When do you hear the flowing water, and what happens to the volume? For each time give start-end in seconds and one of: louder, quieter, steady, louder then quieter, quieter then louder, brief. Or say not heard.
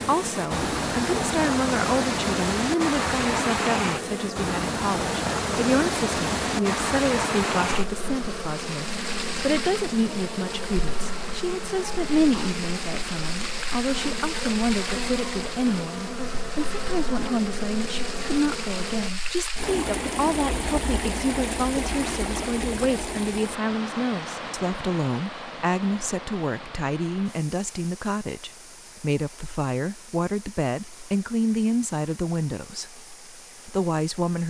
0.0-34.4 quieter.